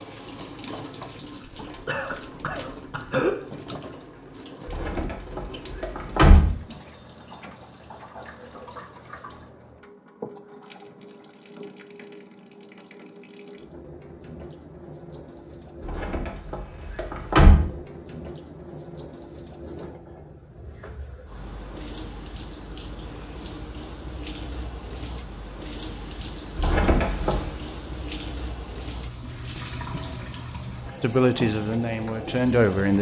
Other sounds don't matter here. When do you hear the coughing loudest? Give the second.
3 s.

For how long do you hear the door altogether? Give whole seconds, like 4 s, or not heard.
5 s.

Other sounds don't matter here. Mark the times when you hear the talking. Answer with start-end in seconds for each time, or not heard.
31.0-32.9.